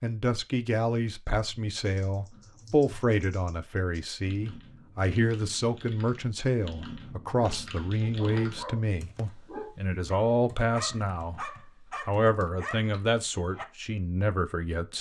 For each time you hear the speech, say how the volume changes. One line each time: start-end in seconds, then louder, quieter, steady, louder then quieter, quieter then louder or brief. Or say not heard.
0.0-11.4 steady
12.1-14.9 brief.